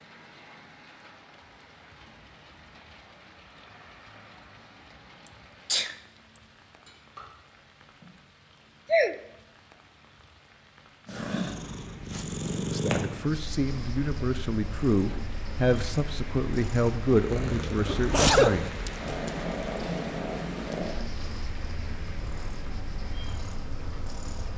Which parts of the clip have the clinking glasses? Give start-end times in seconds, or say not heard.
6.8-8.2.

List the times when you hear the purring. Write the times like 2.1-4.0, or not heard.
11.1-24.5.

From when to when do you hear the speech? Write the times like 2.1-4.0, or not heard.
12.6-18.8.